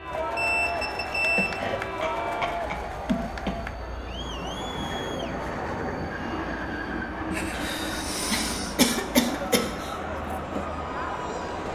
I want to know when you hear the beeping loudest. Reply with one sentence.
The volume of the beeping peaks at 1 second.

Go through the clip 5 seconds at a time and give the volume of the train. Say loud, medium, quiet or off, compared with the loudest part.
medium, loud, medium.